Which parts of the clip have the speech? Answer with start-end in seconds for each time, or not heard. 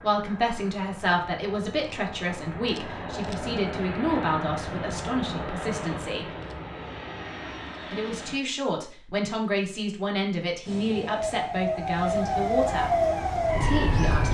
0.0-6.2, 7.9-12.9, 13.6-14.2.